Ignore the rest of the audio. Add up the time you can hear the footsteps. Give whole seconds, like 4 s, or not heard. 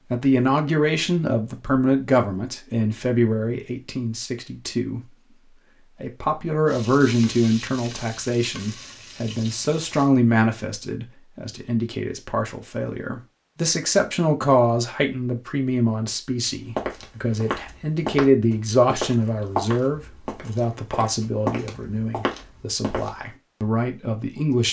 7 s.